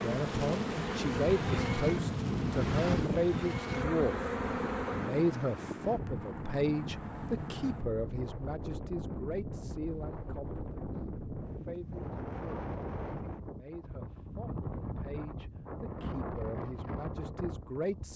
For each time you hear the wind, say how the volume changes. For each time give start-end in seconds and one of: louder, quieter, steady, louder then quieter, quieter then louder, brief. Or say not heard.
0.1-18.1 quieter.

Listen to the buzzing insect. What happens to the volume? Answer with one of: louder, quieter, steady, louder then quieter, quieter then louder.
quieter then louder.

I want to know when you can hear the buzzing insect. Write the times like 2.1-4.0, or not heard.
0.0-5.3.